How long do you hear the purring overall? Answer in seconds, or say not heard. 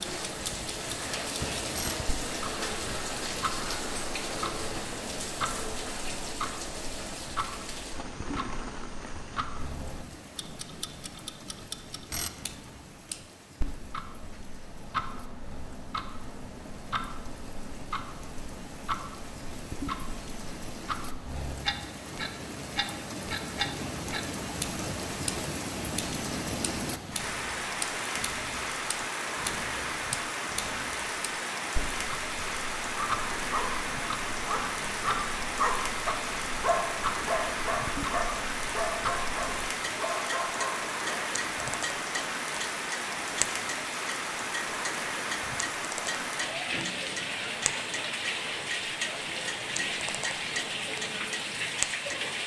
not heard.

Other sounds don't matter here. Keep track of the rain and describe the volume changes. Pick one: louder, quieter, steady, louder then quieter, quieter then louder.
quieter then louder.